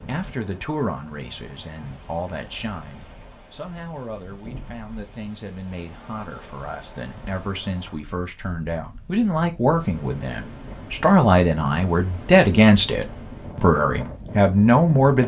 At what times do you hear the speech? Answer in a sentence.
The speech can be heard from 0.0 to 15.2 s.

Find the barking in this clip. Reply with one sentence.
You can't hear the barking here.